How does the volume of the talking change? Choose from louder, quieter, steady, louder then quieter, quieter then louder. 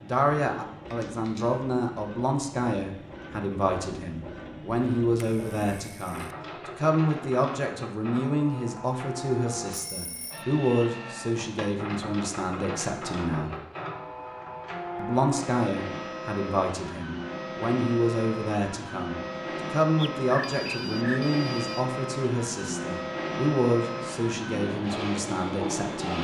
steady.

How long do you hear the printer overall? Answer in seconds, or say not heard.
26 s.